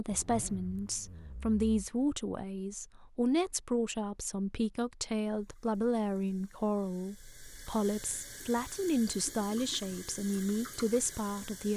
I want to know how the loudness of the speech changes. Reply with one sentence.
The loudness of the speech stays about the same.